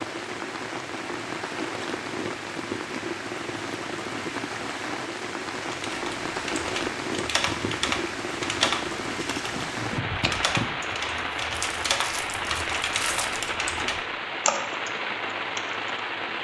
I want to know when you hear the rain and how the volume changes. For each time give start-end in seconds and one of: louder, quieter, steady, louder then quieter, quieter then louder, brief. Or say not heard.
0.0-16.3 steady.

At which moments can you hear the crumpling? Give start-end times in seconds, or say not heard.
11.5-13.6.